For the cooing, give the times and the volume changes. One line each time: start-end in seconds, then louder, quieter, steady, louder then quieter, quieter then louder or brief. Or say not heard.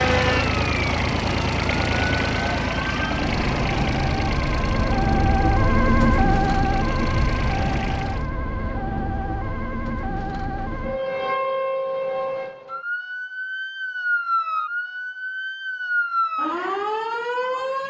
not heard.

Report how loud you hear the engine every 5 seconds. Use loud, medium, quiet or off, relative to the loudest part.
loud, medium, off, off.